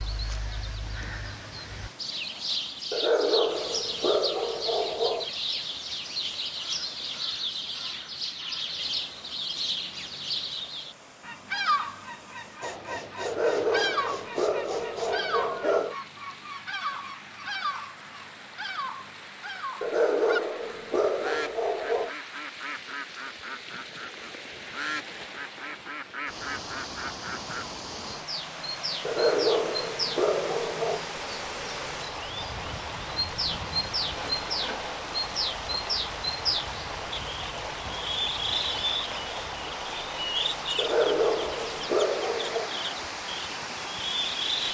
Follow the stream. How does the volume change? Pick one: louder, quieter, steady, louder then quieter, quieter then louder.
louder.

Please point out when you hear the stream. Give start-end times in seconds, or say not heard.
0.0-44.6.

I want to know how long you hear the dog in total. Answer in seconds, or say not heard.
11 s.